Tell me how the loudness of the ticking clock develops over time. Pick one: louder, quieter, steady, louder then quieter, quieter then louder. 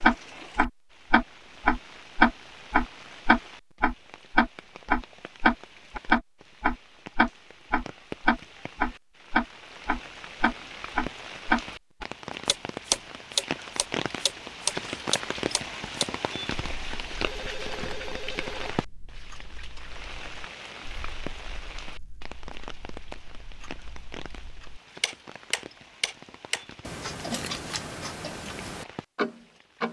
quieter then louder.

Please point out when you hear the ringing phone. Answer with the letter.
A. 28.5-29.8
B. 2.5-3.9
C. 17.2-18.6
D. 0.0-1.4
C.